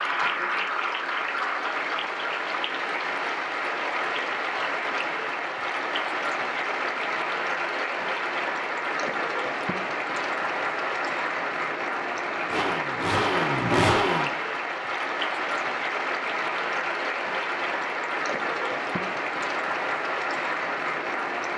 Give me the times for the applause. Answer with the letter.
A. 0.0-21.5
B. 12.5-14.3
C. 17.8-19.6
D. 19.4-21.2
A.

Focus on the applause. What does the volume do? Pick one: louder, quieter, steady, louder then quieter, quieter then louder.
steady.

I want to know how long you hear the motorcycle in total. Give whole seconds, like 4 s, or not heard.
2 s.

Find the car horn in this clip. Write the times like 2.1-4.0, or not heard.
not heard.